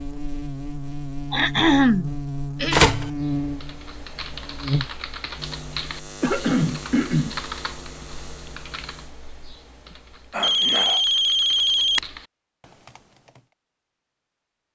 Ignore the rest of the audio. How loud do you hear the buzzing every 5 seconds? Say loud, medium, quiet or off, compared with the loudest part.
loud, medium, off.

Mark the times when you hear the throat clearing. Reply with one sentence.
The throat clearing can be heard from 1.3 to 2.9 s, from 6.2 to 7.4 s and from 10.3 to 11.1 s.